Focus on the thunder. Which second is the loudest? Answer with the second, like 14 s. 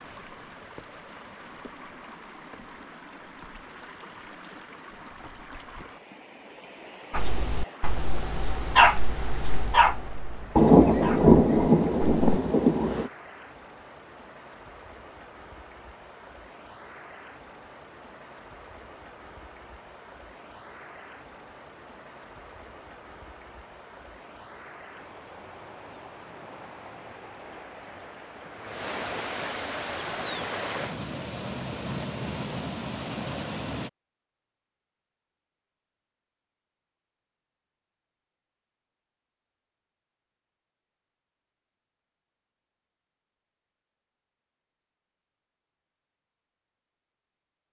11 s.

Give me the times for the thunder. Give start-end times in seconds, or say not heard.
10.6-13.1.